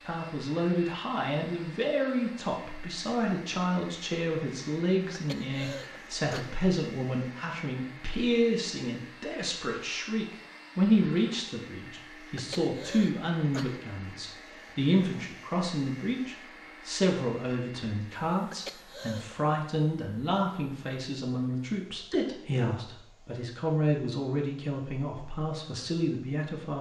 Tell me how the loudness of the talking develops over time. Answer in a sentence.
The loudness of the talking stays about the same.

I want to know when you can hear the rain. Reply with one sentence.
You can't hear the rain here.